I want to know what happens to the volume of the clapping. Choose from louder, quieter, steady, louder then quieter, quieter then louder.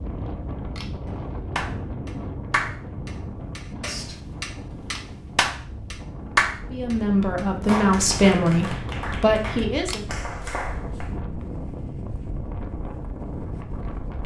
louder then quieter.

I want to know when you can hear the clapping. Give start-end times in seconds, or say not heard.
1.6-11.2.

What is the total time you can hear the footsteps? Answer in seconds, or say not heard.
not heard.